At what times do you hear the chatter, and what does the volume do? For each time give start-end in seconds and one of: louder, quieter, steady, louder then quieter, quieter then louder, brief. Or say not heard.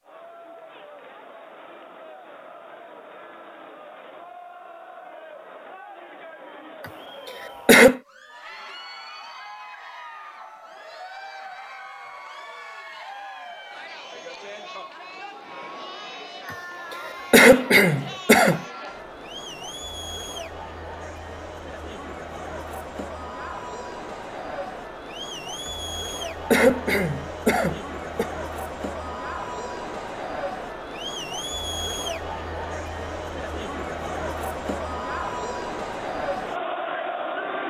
0.0-37.6 louder.